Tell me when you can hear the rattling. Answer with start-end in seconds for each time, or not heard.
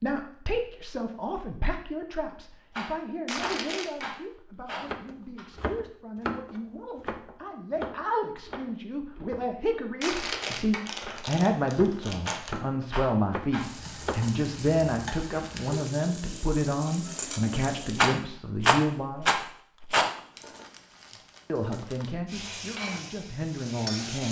2.7-5.5, 12.2-13.7, 17.9-20.1.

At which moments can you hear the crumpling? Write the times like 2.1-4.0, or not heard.
3.2-4.1, 10.0-12.6, 20.0-22.1.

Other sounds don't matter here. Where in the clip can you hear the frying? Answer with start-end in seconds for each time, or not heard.
13.6-18.1, 22.2-24.2.